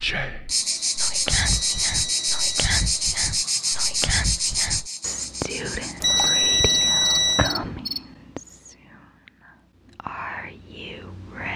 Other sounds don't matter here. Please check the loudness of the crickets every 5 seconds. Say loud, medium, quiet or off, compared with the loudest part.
loud, medium, off.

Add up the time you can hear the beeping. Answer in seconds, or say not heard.
3 s.